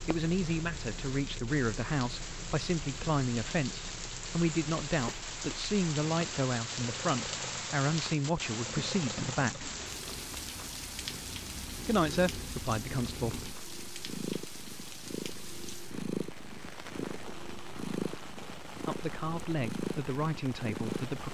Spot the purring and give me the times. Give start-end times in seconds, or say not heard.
0.0-21.3.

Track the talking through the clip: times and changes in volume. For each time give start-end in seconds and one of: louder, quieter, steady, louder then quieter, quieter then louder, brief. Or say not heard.
0.1-9.7 steady
11.8-13.4 brief
18.9-21.3 brief.